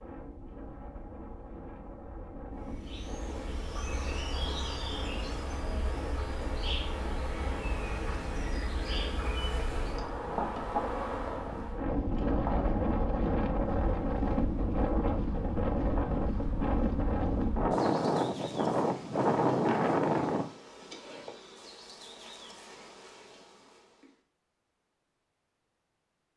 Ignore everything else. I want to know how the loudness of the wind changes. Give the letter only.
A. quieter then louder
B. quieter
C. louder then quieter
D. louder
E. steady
D.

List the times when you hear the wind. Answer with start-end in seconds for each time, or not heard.
0.0-20.4.